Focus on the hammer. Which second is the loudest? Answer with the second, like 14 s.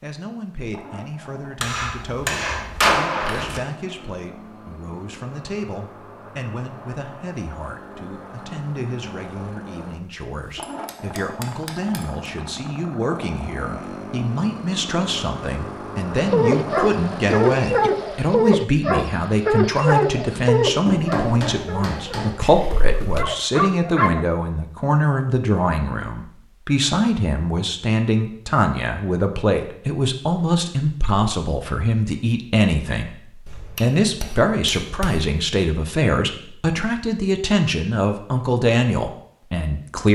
3 s.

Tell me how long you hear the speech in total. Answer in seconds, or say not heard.
40 s.